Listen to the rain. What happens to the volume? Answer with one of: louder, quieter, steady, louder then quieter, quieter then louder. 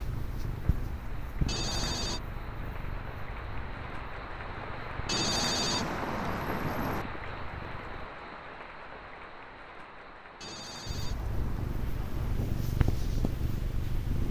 louder then quieter.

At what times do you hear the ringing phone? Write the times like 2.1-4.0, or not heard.
1.4-2.2, 5.0-7.0, 10.4-12.3.